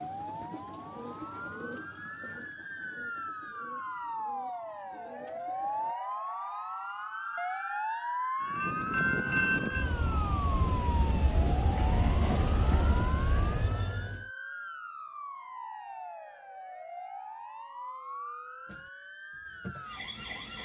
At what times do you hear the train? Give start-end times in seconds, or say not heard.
8.4-14.2.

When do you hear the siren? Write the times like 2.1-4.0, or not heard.
0.0-20.6.